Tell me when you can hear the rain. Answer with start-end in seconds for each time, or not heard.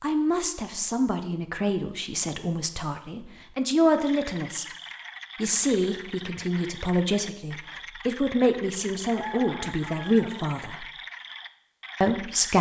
not heard.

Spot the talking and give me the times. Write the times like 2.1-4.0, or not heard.
0.0-4.7, 5.3-10.8, 12.0-12.5.